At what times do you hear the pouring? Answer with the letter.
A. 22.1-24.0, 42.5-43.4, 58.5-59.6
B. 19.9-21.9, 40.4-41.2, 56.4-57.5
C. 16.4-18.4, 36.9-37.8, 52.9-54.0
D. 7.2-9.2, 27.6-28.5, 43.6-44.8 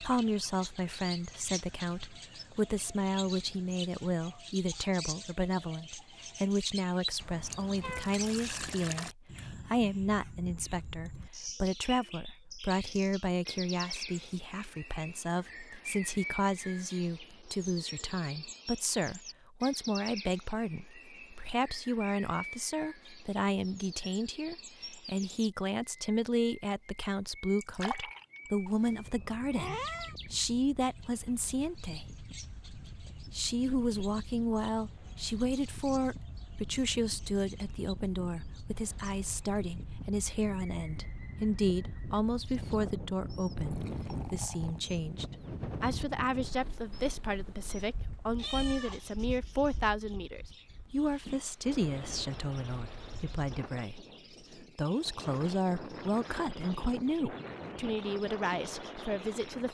D.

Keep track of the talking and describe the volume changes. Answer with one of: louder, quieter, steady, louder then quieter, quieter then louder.
steady.